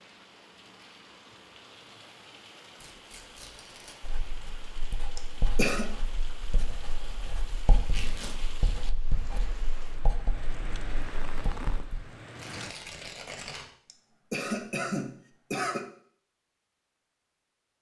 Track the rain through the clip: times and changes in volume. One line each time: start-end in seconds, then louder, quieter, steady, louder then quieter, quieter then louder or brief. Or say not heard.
0.0-12.8 louder.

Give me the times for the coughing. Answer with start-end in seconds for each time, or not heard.
5.2-5.9, 13.8-15.8.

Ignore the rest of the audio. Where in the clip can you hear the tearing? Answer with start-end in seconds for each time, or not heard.
2.8-4.0, 7.8-8.5, 12.3-13.7.